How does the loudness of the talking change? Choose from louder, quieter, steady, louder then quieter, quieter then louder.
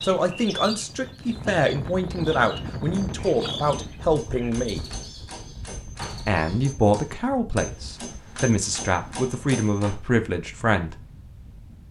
steady.